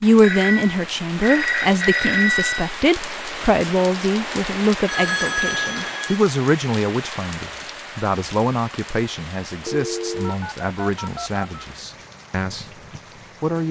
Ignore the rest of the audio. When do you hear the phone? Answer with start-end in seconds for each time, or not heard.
0.2-2.8, 4.8-6.0, 9.7-11.4.